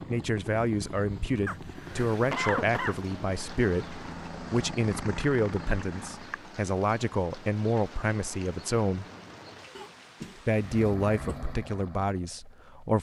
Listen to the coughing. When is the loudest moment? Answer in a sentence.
The loudest moment of the coughing is at 2 seconds.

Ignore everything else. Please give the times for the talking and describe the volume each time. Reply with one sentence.
The talking can be heard from 0.1 to 9.1 s, at a steady volume; and briefly from 10.4 to 12.9 s.